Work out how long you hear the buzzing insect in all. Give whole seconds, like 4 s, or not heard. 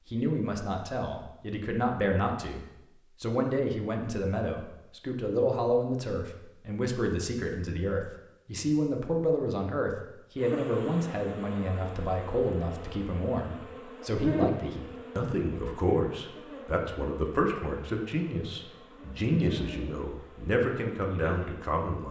12 s.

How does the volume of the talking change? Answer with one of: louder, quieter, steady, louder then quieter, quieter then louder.
steady.